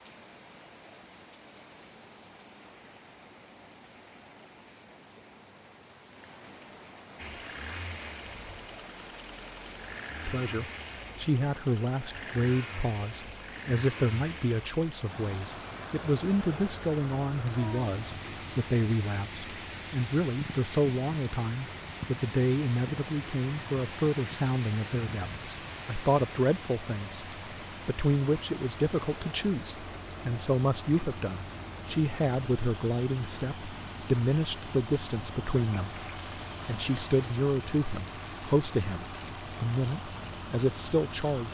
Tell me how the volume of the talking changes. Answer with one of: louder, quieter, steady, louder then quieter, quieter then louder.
steady.